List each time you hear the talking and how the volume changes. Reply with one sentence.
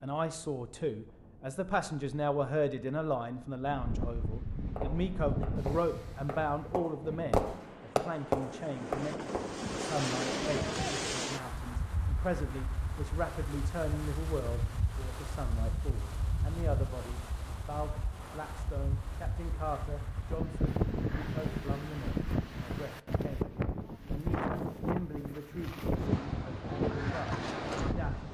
You can hear the talking from 0.0 to 28.2 s, getting quieter.